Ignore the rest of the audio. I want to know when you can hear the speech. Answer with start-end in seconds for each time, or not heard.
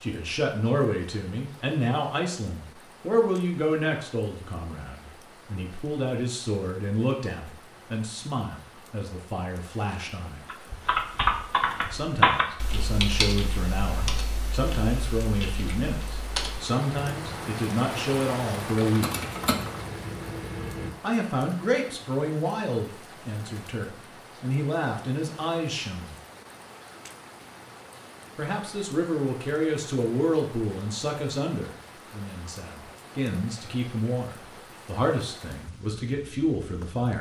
0.0-10.4, 11.9-19.1, 21.0-26.1, 28.4-37.1.